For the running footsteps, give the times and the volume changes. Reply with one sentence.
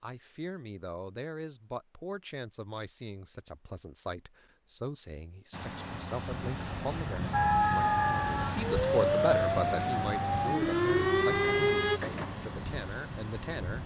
You can't hear the running footsteps here.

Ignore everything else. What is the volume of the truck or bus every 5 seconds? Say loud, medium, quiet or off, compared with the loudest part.
off, loud, loud.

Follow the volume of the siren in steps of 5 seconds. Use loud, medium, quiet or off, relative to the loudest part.
off, loud, loud.